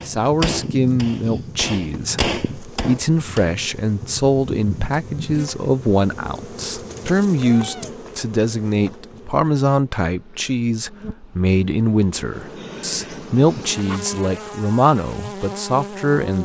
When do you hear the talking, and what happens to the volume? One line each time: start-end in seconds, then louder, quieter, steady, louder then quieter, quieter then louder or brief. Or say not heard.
0.1-16.4 steady.